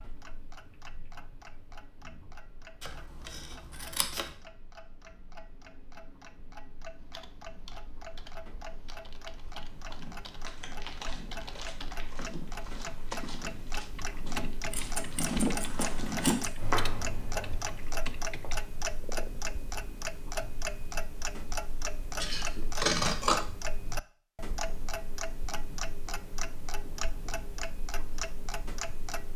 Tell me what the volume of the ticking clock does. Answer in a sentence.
The loudness of the ticking clock goes up.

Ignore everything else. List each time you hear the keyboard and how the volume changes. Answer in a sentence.
You can hear the keyboard from 7.0 to 18.6 s, getting louder.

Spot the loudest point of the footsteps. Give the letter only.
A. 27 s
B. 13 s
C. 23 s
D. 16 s
D.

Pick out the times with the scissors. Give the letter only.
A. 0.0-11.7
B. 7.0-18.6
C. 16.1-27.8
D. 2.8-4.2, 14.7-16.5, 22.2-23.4
D.